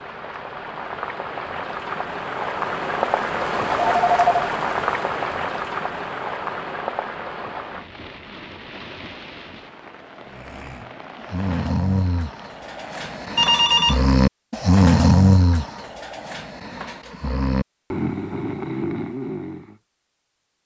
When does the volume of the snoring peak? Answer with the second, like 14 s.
15 s.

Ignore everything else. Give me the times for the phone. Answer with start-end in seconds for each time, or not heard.
3.8-4.3, 13.3-14.1.